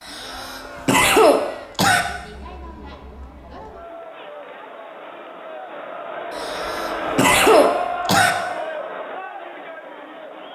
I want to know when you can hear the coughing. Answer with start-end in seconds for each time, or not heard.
0.1-2.0, 6.3-8.3.